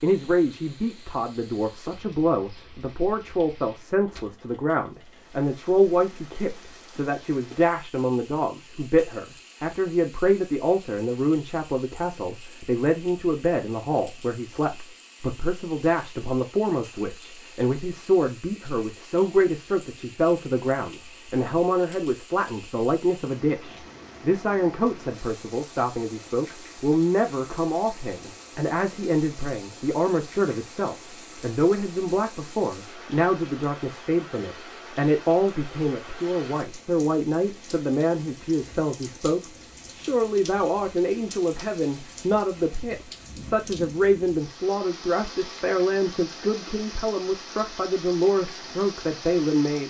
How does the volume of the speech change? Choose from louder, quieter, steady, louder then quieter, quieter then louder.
steady.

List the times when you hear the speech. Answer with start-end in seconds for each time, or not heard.
0.0-49.8.